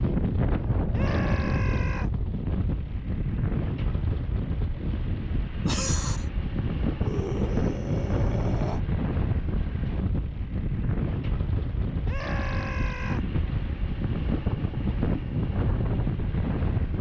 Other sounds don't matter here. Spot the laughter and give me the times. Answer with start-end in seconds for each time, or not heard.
5.6-6.2.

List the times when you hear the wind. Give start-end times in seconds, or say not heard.
0.0-16.9.